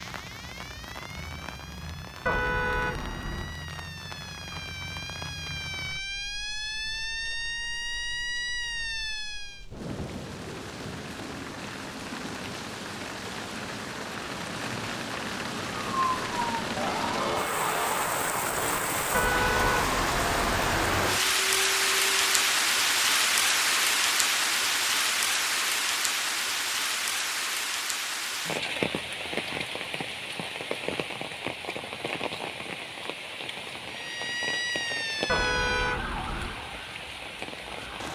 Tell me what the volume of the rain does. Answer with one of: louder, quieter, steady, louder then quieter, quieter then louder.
louder then quieter.